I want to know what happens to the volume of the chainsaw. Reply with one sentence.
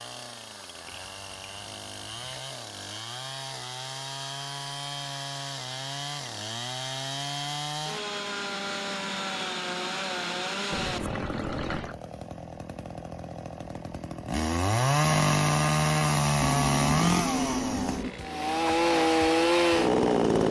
The loudness of the chainsaw goes up.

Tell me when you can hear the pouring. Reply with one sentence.
The pouring can be heard from 0.8 to 2.4 s, from 10.7 to 11.9 s and from 16.4 to 18.1 s.